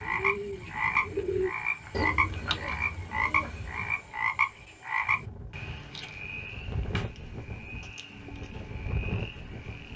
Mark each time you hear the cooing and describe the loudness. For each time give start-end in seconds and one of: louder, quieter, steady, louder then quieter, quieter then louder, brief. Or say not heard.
0.0-4.1 louder then quieter.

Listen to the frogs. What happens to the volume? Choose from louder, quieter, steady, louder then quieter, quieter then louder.
quieter.